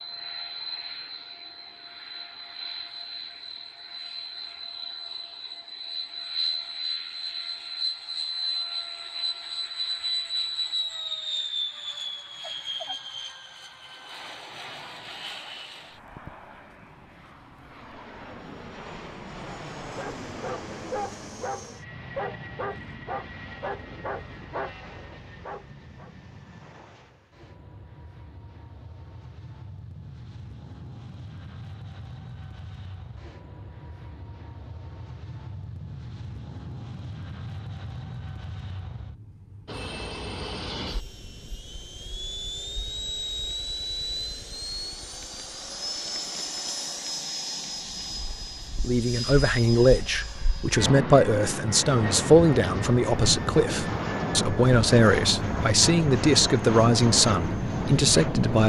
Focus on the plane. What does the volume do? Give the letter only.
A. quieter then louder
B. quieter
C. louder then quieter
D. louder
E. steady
A.